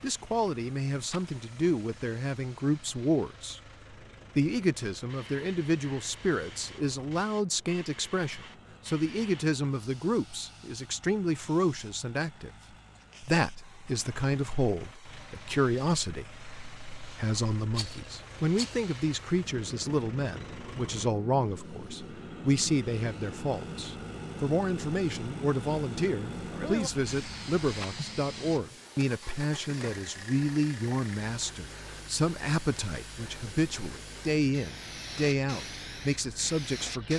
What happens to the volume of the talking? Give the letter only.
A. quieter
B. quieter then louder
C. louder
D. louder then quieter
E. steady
E.